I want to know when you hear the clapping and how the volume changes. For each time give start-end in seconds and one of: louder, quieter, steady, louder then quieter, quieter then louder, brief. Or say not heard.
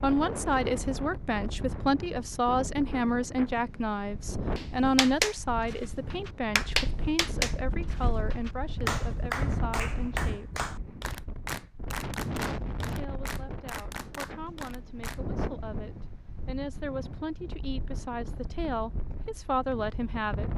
4.5-15.2 quieter.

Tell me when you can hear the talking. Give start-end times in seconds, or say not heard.
0.0-10.7, 12.8-20.5.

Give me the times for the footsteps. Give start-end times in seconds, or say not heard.
not heard.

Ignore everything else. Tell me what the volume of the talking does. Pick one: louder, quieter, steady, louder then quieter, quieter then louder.
quieter then louder.